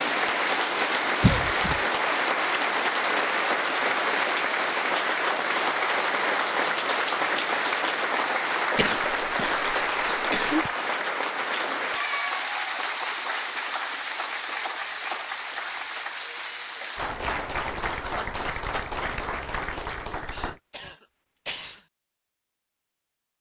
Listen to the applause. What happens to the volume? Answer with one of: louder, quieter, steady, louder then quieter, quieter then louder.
quieter.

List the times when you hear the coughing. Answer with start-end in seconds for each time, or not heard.
1.2-1.8, 8.8-10.7, 20.3-21.9.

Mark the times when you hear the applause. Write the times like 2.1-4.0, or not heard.
0.0-20.6.